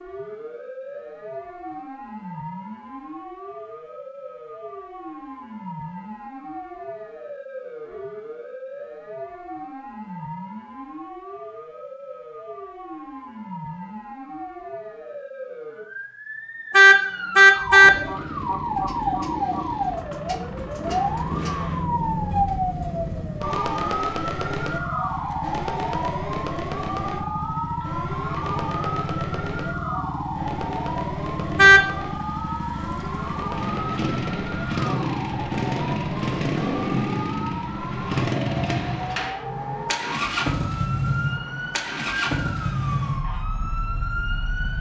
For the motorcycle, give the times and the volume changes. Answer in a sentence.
You can hear the motorcycle from 17.8 to 44.7 s, getting louder.